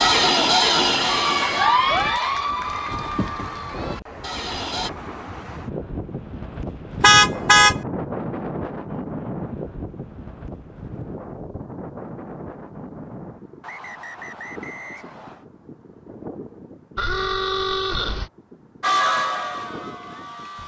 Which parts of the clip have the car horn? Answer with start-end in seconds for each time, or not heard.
2.9-3.8, 7.0-7.8, 16.9-18.3.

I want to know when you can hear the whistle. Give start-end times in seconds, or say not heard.
13.6-15.4.